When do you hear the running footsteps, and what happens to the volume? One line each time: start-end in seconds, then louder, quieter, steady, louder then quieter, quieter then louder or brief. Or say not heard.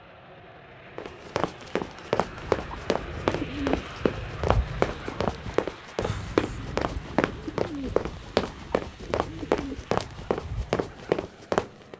0.9-11.9 steady.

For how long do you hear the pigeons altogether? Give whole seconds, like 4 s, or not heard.
9 s.